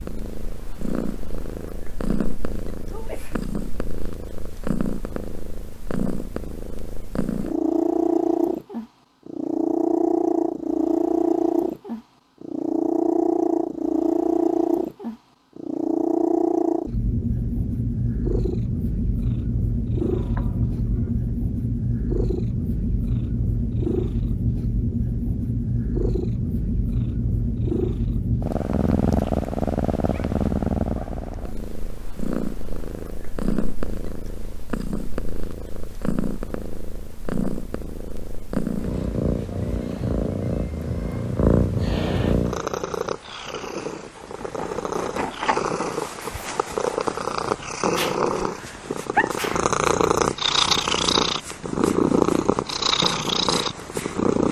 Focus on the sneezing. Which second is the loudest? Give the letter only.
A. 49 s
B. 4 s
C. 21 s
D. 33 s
A.